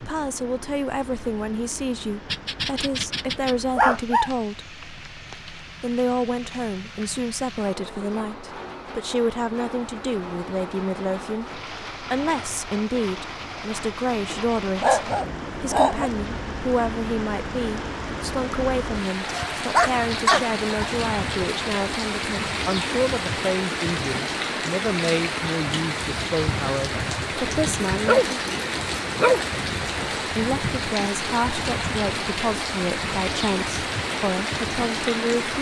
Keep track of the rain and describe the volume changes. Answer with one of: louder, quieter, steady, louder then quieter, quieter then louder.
louder.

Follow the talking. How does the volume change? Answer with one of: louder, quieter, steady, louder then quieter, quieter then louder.
steady.